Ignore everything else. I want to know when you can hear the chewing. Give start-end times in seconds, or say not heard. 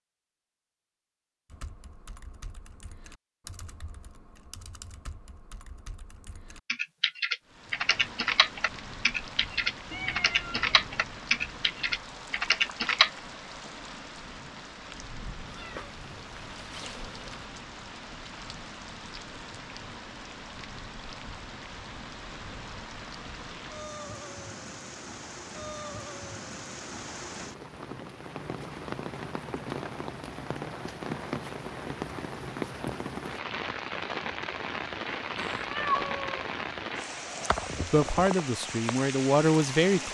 not heard.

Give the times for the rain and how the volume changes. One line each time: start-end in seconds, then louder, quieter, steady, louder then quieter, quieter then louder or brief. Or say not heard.
7.5-40.1 louder.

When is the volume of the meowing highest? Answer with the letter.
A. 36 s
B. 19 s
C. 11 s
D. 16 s
A.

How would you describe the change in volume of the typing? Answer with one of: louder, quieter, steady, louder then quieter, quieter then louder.
louder.